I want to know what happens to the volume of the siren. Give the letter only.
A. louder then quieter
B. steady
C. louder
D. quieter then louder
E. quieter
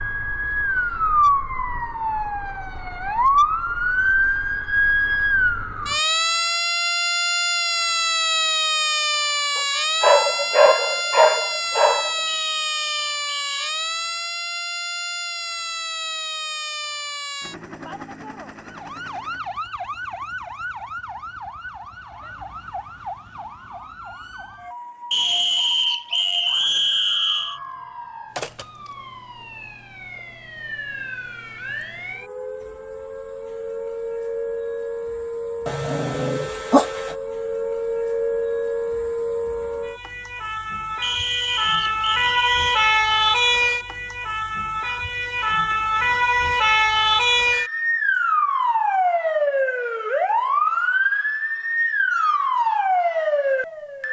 D.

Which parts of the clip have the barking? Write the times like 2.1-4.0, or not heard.
9.6-12.2, 35.6-37.1.